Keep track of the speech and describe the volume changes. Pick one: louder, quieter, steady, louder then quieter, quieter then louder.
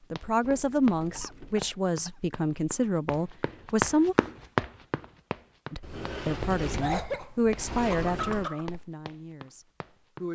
quieter.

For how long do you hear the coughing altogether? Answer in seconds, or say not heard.
3 s.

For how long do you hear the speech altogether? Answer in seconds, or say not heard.
9 s.